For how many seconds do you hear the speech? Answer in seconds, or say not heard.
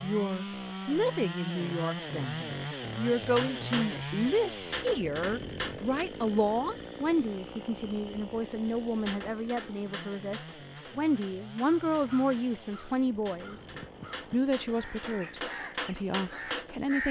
17 s.